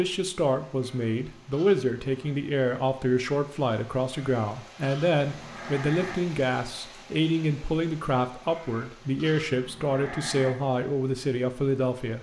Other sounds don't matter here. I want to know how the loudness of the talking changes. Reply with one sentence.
The volume of the talking stays about the same.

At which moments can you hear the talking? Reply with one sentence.
You can hear the talking from 0.0 to 12.1 s.